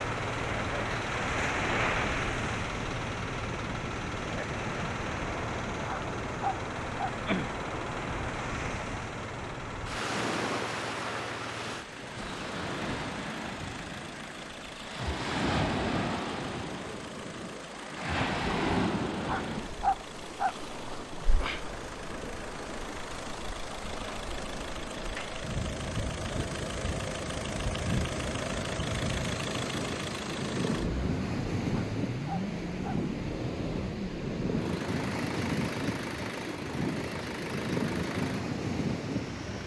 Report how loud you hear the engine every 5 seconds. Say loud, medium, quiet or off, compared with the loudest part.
loud, medium, medium, medium, medium, loud, loud, loud.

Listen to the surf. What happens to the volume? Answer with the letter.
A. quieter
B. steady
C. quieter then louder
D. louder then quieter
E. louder
B.